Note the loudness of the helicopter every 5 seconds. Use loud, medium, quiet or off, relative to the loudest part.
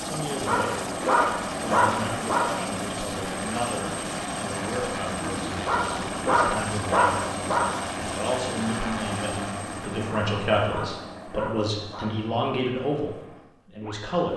loud, loud, medium.